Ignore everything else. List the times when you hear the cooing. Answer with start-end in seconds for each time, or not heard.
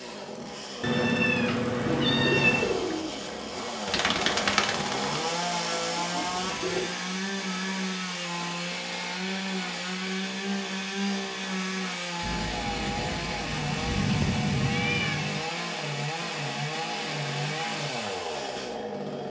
1.8-6.9.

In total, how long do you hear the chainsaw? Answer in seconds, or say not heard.
19 s.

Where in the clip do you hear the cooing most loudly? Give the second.
4 s.